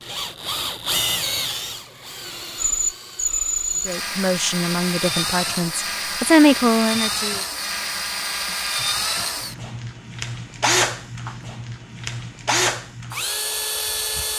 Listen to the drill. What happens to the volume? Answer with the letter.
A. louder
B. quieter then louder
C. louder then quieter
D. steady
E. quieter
D.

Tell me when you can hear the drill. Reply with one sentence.
The drill can be heard from 0.0 to 14.3 s.